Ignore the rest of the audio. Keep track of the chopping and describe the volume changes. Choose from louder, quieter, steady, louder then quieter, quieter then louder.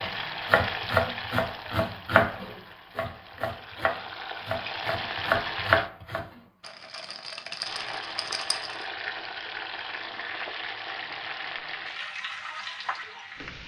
quieter then louder.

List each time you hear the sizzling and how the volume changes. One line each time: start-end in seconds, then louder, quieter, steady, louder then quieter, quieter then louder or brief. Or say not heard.
0.0-5.9 quieter then louder
7.6-13.6 steady.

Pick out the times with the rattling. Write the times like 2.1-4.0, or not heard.
6.6-8.8.